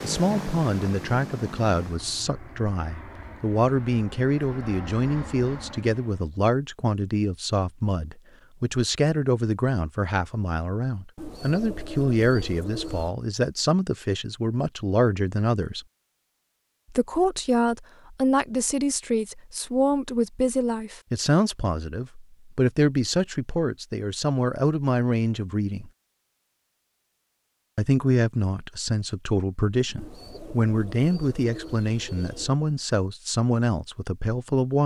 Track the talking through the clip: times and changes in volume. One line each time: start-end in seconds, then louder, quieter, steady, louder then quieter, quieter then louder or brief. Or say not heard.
0.0-15.8 steady
16.9-25.9 steady
27.8-34.8 steady.